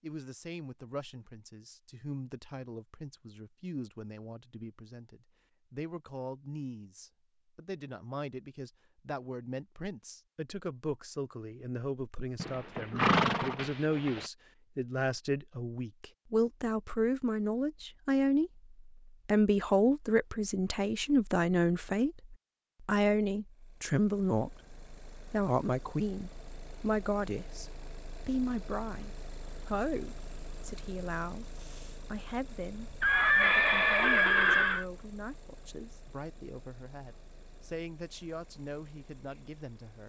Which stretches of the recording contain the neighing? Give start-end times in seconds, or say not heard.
12.3-14.3, 33.0-34.9.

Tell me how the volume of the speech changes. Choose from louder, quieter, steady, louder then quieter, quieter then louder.
louder then quieter.